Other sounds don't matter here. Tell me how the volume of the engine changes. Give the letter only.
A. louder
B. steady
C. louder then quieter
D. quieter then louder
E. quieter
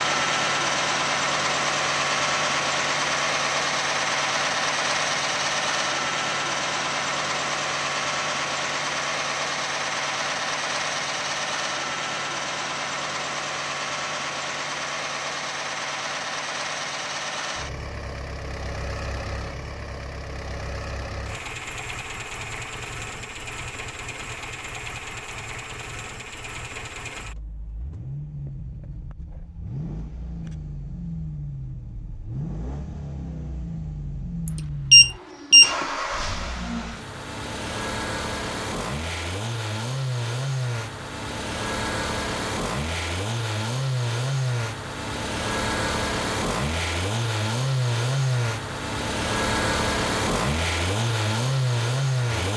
D.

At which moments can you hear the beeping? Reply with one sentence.
You can hear the beeping from 34.5 to 35.8 s.